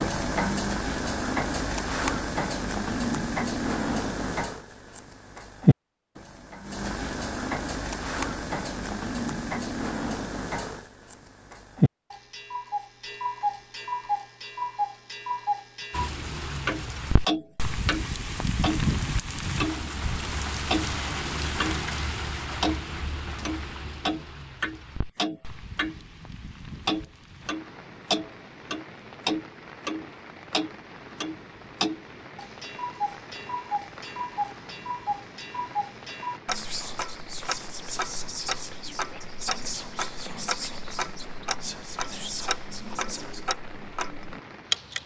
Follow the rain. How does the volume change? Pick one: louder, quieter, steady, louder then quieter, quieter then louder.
quieter.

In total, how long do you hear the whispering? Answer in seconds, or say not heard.
7 s.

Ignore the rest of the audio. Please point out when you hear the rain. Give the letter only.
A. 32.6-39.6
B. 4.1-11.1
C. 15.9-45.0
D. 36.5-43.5
C.